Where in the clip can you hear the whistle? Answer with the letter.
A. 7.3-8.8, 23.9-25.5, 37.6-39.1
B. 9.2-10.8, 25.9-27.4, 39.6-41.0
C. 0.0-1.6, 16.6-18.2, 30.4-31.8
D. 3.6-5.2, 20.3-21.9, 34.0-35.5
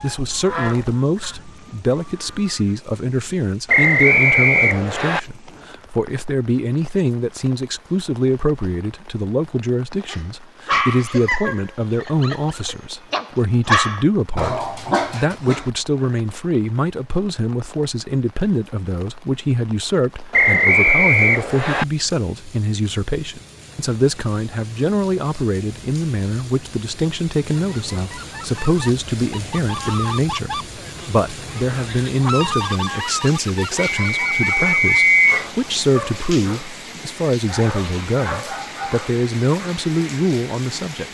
D.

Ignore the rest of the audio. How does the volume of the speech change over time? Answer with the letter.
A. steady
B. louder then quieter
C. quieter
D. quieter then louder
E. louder
A.